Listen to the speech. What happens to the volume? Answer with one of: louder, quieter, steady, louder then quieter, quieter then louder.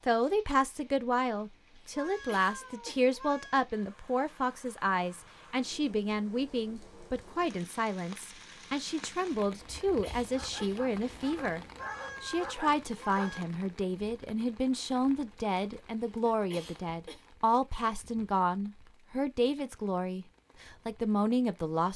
steady.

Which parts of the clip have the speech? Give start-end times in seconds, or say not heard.
0.1-21.9.